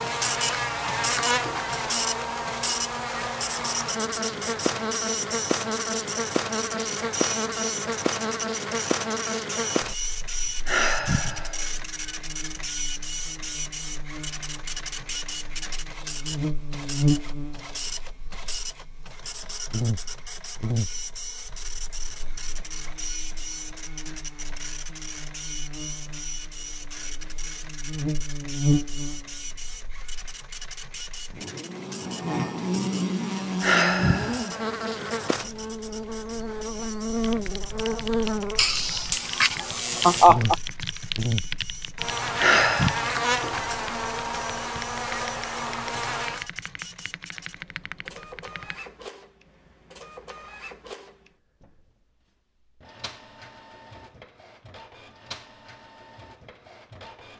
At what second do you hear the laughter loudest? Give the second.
40 s.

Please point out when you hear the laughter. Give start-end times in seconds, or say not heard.
38.5-40.5.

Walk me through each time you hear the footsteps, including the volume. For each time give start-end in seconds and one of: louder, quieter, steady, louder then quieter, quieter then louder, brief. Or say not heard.
not heard.